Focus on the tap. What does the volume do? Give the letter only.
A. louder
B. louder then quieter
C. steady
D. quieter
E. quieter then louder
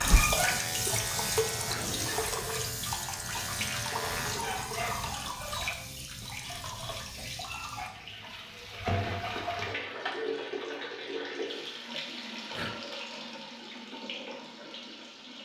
D.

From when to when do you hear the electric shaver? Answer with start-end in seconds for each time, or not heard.
0.0-4.4.